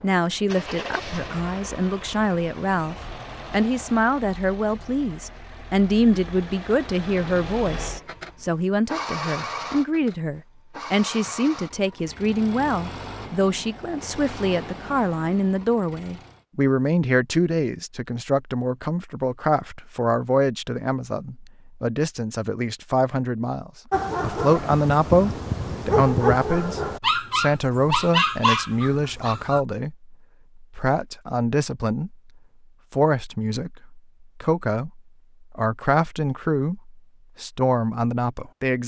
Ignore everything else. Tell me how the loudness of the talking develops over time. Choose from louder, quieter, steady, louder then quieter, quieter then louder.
steady.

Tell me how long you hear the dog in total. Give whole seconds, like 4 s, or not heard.
6 s.